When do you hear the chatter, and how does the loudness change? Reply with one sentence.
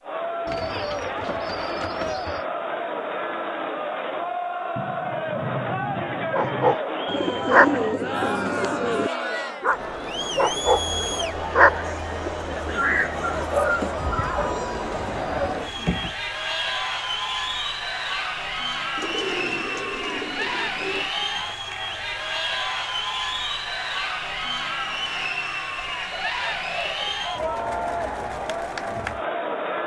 The chatter can be heard from 0.0 to 29.8 s, at a steady volume.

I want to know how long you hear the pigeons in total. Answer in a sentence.
You can hear the pigeons for 10 seconds altogether.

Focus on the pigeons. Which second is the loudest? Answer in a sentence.
The volume of the pigeons peaks at 8 seconds.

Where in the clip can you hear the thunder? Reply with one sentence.
The thunder can be heard from 4.8 to 6.8 s.